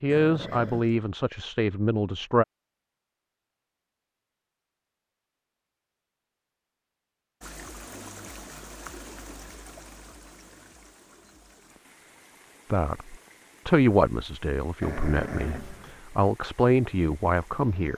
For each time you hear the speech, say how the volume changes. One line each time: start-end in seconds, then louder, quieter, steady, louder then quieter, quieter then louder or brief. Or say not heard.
0.0-2.5 brief
12.7-17.9 quieter then louder.